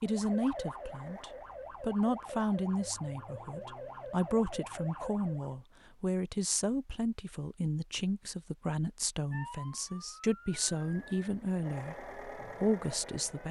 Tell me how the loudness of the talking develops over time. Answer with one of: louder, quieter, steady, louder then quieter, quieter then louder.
steady.